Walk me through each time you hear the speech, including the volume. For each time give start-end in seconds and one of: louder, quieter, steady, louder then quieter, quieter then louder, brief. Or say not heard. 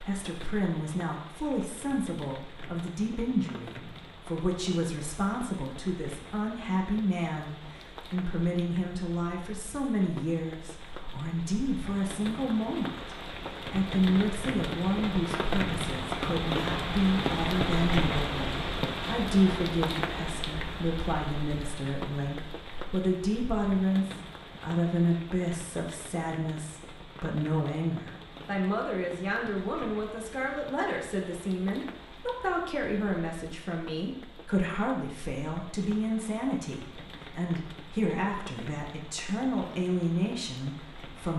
0.0-41.3 steady.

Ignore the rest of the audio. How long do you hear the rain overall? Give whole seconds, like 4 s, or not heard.
41 s.